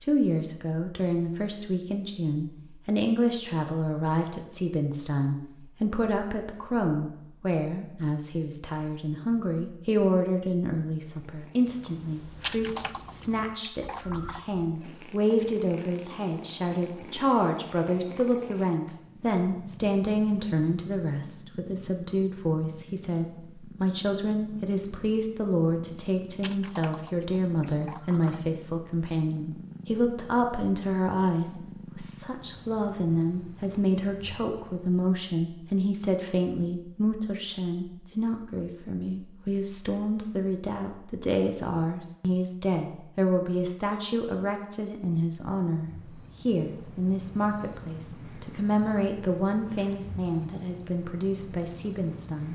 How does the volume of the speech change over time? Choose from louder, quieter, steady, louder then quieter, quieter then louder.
steady.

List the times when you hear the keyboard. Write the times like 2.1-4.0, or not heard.
12.4-14.4, 26.4-28.4.